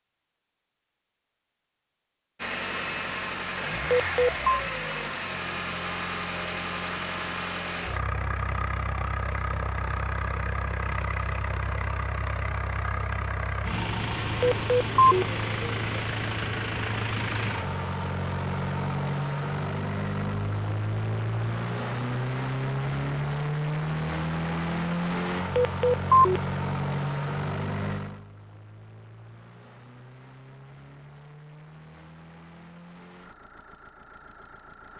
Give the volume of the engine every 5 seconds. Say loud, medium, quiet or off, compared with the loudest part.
loud, loud, loud, loud, loud, loud, quiet.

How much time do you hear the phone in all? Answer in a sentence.
You can hear the phone for 2 seconds altogether.